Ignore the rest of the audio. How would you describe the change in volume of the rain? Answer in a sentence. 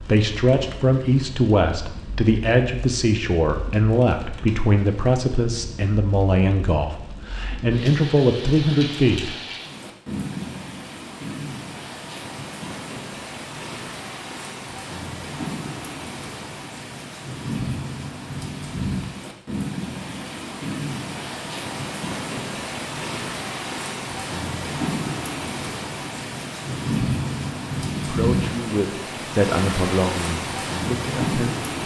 The loudness of the rain goes up.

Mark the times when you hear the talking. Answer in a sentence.
The talking can be heard from 0.0 to 9.3 s and from 27.9 to 31.8 s.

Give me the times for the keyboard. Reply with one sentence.
The keyboard can't be heard in this clip.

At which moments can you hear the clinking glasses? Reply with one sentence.
You can't hear the clinking glasses here.